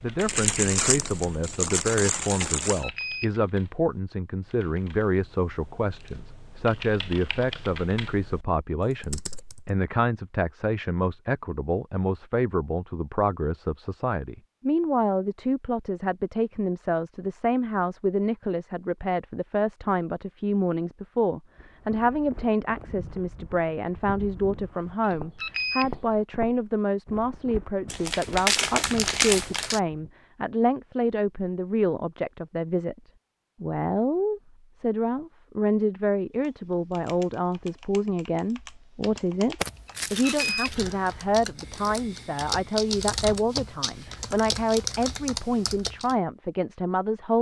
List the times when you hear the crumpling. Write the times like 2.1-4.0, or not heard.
0.2-2.9, 27.9-29.8, 39.6-40.8.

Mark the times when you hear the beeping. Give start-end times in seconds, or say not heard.
2.6-3.4, 25.1-26.1, 39.9-40.8.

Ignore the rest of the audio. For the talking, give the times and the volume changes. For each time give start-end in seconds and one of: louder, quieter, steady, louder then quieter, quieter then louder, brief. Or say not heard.
0.0-33.0 steady
33.6-47.3 steady.